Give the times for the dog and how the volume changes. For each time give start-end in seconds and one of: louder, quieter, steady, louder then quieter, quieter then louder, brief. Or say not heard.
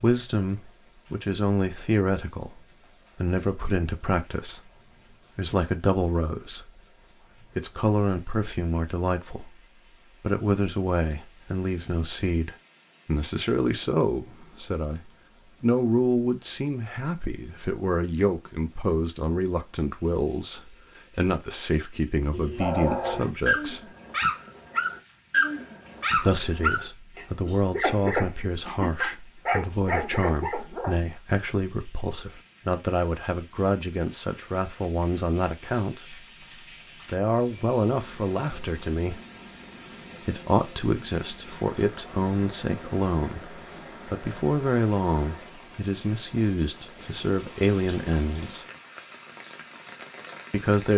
22.3-31.0 steady.